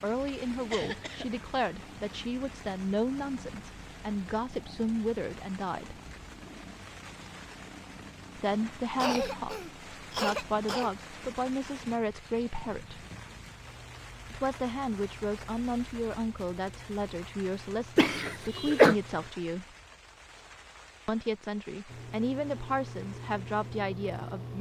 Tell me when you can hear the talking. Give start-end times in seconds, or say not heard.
0.0-6.0, 8.3-13.1, 14.3-19.6, 21.1-24.5.